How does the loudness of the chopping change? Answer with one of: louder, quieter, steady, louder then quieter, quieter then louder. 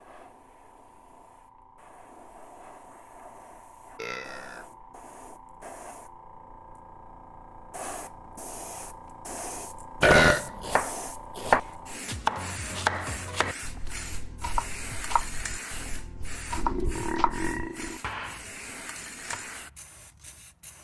quieter.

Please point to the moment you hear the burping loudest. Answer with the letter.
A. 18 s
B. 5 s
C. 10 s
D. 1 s
C.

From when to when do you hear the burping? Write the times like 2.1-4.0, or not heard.
4.0-4.7, 10.0-10.8, 16.6-18.0.